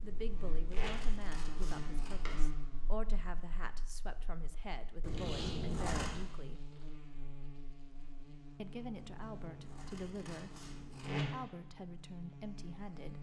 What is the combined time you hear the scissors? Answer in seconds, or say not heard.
6 s.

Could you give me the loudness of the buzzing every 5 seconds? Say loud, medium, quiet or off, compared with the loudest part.
medium, medium, loud.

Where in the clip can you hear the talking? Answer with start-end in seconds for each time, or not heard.
0.0-6.7, 8.6-13.1.